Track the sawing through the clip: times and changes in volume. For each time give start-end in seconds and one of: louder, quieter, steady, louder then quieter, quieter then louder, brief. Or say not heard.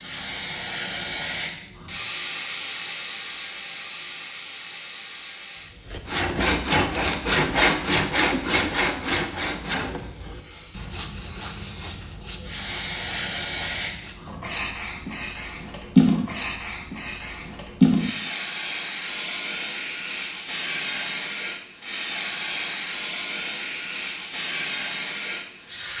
5.8-14.4 quieter.